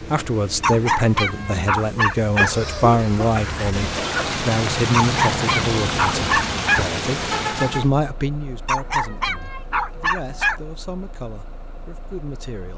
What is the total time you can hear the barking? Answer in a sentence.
The barking can be heard for 6 seconds in total.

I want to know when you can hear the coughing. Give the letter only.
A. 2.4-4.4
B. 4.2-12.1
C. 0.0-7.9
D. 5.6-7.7
A.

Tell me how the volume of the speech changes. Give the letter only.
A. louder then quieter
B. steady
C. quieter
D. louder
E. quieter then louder
C.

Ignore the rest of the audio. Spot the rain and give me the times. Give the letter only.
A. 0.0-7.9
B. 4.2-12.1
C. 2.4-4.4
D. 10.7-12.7
A.